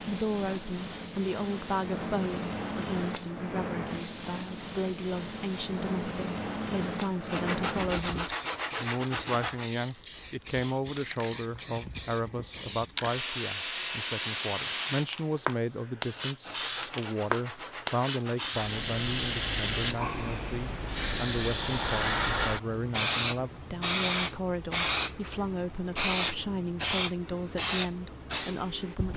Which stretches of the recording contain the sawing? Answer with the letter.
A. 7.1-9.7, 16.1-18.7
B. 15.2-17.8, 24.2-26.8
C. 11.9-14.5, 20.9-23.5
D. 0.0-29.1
A.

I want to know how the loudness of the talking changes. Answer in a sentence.
The volume of the talking stays about the same.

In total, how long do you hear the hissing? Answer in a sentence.
The hissing can be heard for 29 seconds in total.